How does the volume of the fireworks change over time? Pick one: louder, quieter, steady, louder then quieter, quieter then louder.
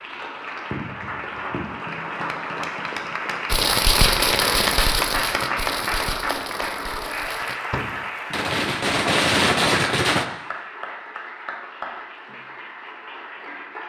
quieter then louder.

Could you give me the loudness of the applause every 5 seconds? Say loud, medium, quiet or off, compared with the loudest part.
loud, loud, medium.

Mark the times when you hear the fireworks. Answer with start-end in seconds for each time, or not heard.
3.5-10.2.